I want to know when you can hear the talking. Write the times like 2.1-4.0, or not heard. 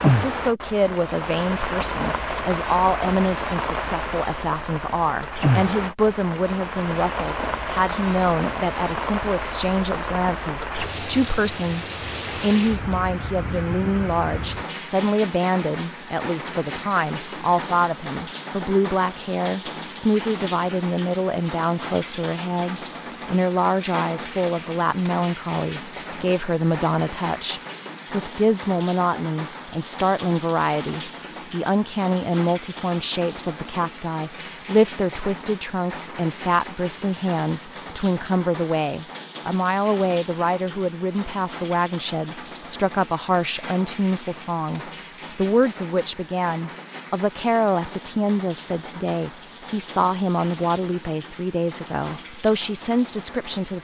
0.0-53.7.